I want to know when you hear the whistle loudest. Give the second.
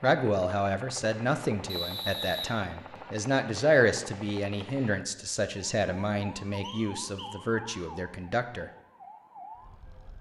2 s.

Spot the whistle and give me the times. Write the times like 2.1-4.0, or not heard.
1.6-3.1, 6.6-7.3.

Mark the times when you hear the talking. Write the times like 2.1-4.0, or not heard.
0.0-8.7.